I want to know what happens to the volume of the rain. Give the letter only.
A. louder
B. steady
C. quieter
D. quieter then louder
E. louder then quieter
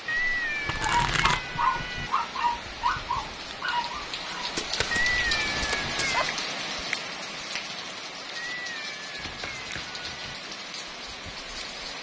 E.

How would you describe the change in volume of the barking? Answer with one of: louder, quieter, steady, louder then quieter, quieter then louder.
quieter.